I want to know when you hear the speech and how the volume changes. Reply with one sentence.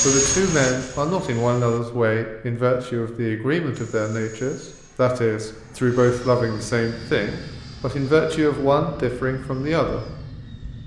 The speech can be heard from 0.0 to 10.1 s, at a steady volume.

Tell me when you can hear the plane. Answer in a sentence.
The plane can be heard from 0.0 to 1.8 s and from 3.7 to 10.8 s.